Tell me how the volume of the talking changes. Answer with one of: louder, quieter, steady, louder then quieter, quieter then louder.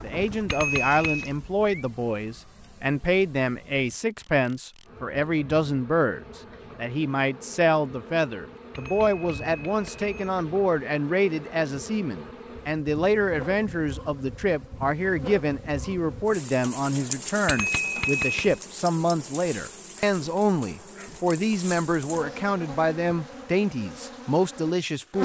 steady.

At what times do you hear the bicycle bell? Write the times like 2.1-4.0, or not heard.
0.5-1.3, 8.7-10.3, 17.4-18.6.